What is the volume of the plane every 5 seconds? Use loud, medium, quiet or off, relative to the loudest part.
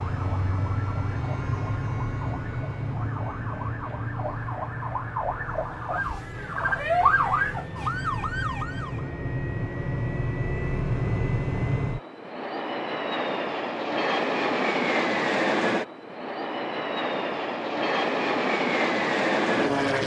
medium, medium, loud, loud.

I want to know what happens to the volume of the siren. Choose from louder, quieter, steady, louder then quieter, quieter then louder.
louder.